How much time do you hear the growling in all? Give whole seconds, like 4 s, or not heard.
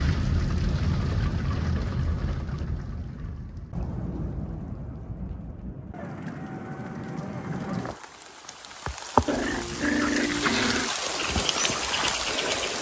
2 s.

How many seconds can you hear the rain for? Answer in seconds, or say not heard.
13 s.